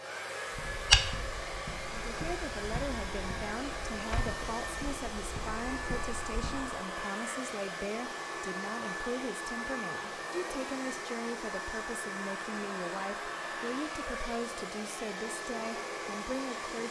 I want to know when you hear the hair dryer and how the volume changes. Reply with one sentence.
The hair dryer can be heard from 0.0 to 16.8 s, at a steady volume.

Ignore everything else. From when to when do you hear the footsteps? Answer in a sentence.
The footsteps can be heard from 0.5 to 6.8 s.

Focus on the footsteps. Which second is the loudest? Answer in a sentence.
The volume of the footsteps peaks at 1 second.